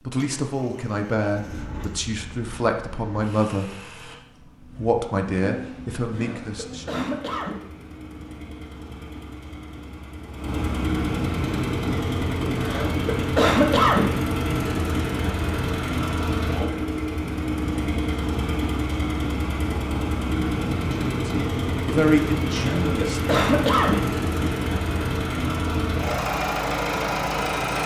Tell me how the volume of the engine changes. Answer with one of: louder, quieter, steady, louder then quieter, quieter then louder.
louder.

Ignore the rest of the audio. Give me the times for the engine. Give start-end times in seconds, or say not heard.
0.0-27.8.